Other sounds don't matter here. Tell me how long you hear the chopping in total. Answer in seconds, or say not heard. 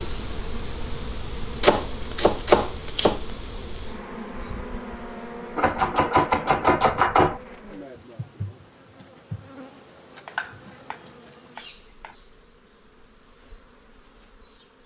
5 s.